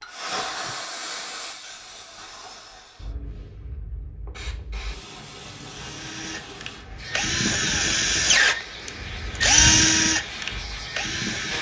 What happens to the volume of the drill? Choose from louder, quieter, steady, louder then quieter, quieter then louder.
louder then quieter.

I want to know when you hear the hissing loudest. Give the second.
1 s.